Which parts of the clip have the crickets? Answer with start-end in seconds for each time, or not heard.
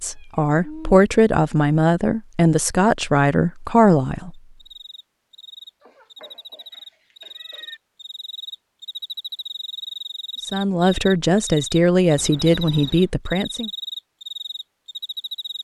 4.5-15.5.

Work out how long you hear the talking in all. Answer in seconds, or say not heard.
8 s.